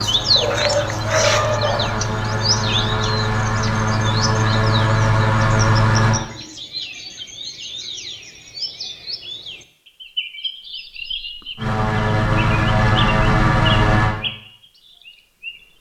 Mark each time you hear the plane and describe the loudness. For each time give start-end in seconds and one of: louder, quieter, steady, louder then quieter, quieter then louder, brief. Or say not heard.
0.0-6.2 louder
11.6-14.2 brief.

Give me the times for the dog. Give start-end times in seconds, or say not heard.
0.3-2.0.